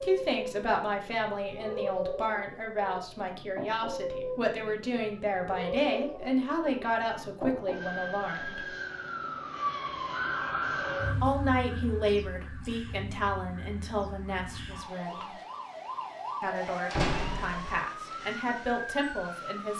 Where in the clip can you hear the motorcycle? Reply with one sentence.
The motorcycle can't be heard in this clip.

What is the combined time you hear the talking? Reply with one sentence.
The talking can be heard for 16 seconds in total.